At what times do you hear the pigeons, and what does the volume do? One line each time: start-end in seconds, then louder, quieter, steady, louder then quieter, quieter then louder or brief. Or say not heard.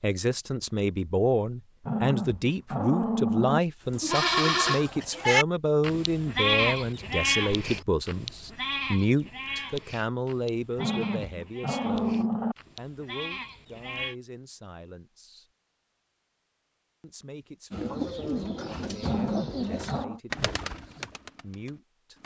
17.7-22.2 quieter.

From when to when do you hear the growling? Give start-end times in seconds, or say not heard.
1.8-3.6, 10.8-12.6, 19.0-20.2.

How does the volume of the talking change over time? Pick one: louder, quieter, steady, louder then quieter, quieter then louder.
quieter.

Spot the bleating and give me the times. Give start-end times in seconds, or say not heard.
3.9-14.2.